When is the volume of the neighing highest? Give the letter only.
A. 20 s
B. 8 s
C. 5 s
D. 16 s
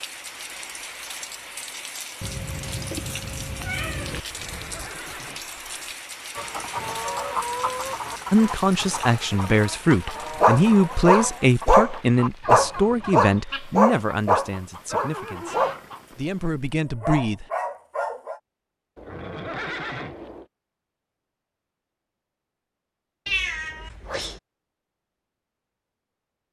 A.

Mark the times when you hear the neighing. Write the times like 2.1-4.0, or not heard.
4.2-5.5, 14.9-15.9, 18.9-20.4.